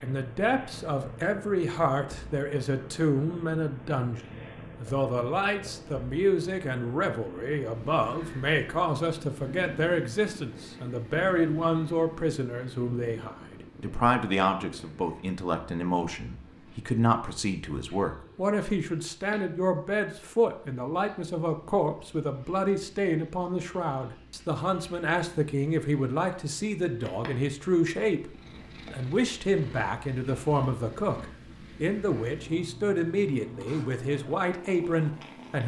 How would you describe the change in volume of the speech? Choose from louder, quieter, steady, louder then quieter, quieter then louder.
steady.